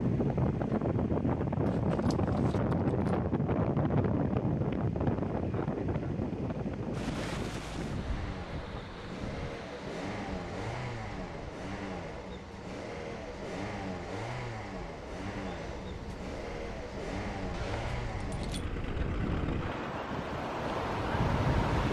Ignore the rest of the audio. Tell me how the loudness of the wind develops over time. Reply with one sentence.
The loudness of the wind goes down, then up.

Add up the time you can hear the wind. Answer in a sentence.
You can hear the wind for 22 seconds altogether.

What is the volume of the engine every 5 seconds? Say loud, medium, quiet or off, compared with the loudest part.
quiet, medium, loud, loud, off.